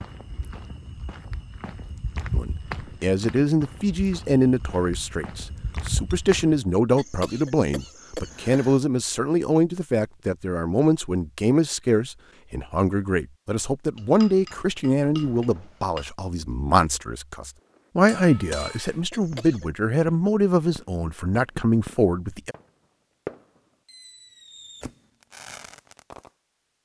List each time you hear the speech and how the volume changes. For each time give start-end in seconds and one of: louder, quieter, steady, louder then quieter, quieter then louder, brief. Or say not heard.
2.3-22.6 steady.